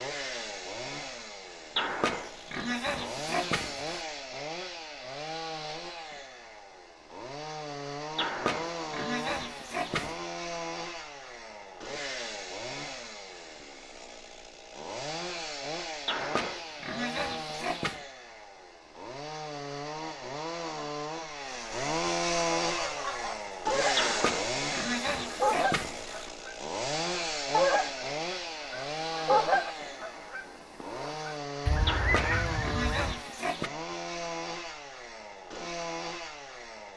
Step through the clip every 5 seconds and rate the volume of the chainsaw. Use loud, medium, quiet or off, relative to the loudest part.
medium, medium, medium, medium, loud, loud, medium, medium.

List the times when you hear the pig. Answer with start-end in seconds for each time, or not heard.
1.8-4.0, 8.2-10.2, 16.1-18.0, 23.9-26.3, 31.9-33.7.